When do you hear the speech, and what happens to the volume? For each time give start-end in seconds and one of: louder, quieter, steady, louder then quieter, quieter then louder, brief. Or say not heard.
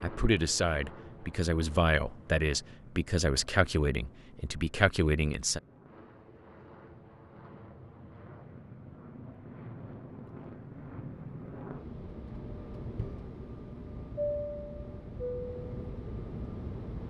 0.0-5.6 steady.